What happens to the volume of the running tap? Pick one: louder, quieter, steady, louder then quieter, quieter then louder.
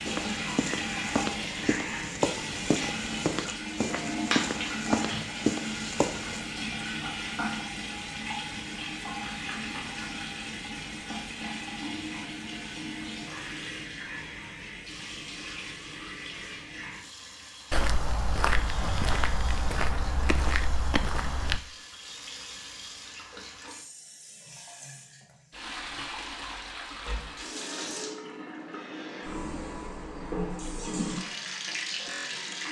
quieter then louder.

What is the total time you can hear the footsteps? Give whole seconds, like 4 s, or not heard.
10 s.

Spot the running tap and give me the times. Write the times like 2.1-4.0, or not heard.
0.0-32.6.